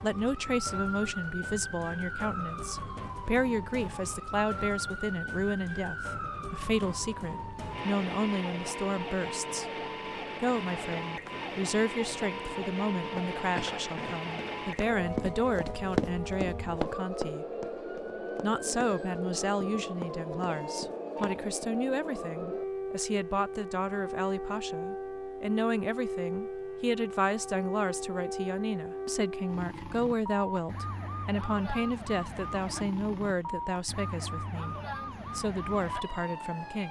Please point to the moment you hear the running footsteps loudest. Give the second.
16 s.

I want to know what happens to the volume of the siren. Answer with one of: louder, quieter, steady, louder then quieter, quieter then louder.
steady.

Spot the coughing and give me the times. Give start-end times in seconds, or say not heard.
13.5-14.2.